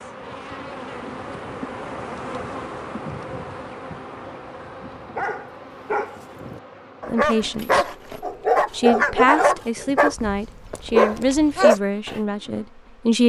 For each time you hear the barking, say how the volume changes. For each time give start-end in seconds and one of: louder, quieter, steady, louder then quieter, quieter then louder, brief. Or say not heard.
5.2-12.2 louder.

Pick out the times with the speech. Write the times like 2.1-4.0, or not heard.
7.0-7.8, 8.7-13.2.